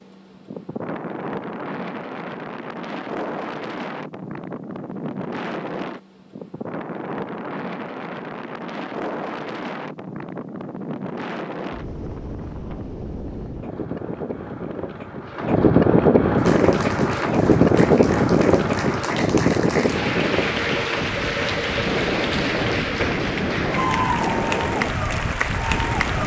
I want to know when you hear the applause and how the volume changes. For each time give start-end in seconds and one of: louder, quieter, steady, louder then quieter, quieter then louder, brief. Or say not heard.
16.4-26.2 louder.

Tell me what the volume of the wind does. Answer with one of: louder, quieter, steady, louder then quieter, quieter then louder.
louder then quieter.